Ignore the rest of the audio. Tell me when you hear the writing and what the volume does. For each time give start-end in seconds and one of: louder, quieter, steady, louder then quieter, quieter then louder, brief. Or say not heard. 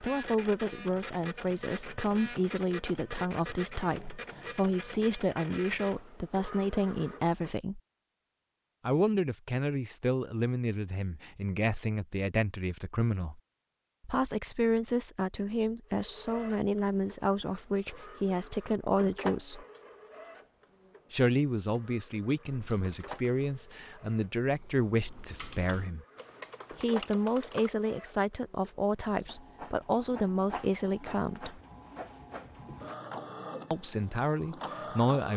not heard.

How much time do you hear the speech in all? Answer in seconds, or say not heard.
29 s.